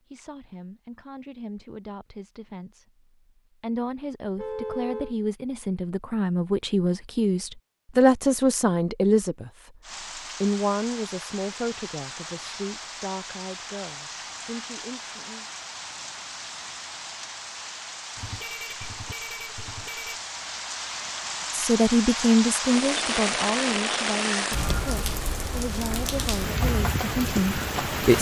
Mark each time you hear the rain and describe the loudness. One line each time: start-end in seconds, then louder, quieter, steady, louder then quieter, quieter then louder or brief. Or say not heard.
9.8-28.1 louder.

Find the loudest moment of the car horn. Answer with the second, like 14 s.
5 s.